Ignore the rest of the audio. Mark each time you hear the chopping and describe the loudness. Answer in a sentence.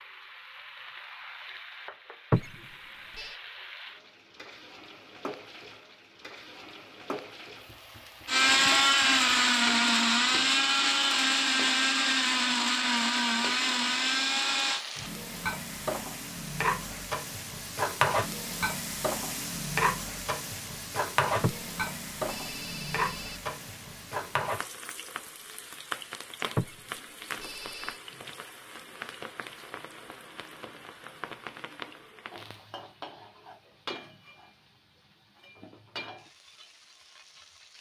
The chopping can't be heard in this clip.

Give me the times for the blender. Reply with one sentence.
You can hear the blender from 8.2 to 14.8 s.